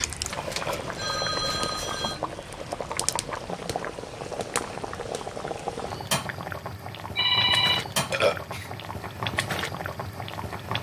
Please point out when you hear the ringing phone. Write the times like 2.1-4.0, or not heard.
0.2-2.2, 7.2-7.8.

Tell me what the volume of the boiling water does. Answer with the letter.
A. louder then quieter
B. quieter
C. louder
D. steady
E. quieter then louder
D.